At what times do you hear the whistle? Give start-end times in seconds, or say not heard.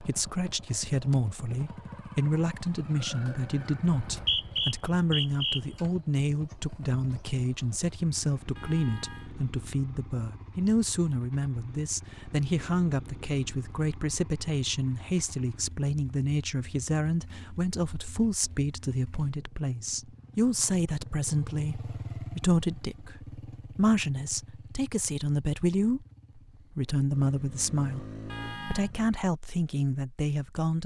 3.9-5.6.